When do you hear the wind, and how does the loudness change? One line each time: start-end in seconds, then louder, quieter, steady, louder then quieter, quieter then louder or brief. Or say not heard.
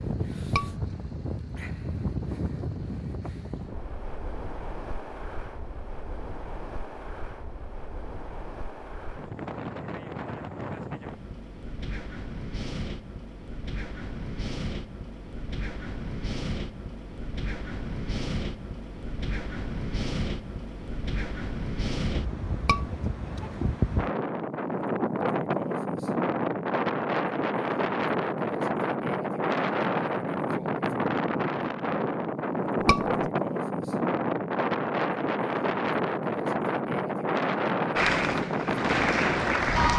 0.0-39.9 louder.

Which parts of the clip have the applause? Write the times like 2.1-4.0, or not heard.
38.0-39.9.